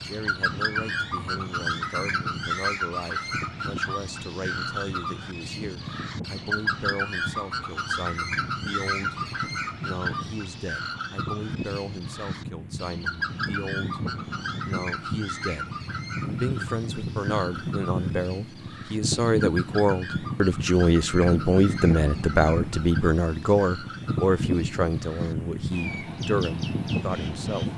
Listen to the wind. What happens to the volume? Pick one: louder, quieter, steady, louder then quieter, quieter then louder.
louder.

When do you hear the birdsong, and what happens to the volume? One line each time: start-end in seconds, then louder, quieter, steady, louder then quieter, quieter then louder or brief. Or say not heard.
0.0-27.7 quieter.